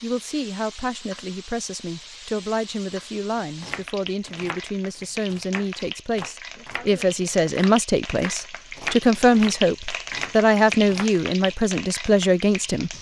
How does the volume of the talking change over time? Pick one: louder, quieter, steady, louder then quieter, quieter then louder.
louder.